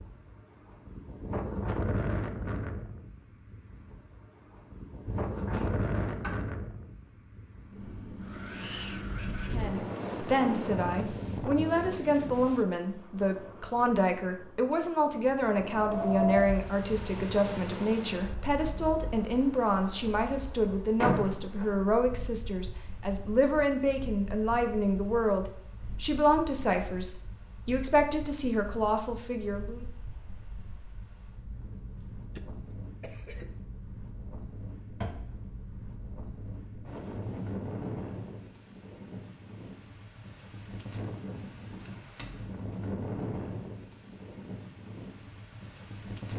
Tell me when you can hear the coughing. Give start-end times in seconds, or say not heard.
31.9-33.6.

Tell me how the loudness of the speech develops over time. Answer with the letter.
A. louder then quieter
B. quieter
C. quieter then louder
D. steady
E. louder
D.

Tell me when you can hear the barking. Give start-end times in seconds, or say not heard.
not heard.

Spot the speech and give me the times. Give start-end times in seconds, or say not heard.
9.5-29.9.